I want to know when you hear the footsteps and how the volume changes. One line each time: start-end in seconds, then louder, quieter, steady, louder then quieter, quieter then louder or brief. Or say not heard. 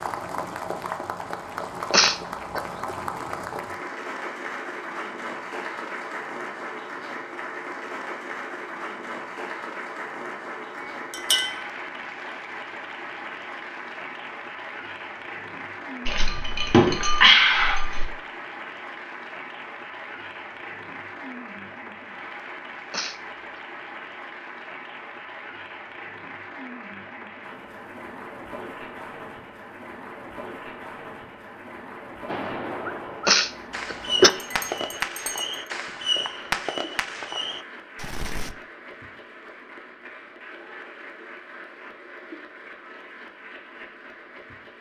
not heard.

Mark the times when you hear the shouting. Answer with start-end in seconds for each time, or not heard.
not heard.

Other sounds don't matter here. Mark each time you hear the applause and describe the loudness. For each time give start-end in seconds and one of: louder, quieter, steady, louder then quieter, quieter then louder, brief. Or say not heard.
0.0-44.7 quieter.